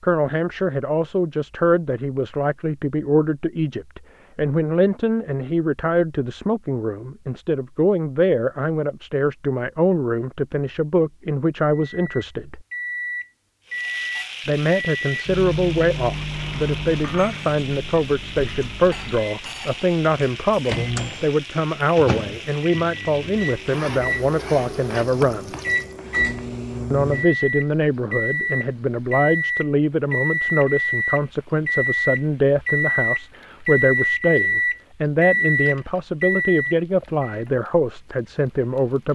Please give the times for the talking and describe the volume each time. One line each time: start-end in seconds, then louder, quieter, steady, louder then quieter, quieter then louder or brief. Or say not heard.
0.0-12.6 steady
14.4-25.6 steady
26.9-39.1 steady.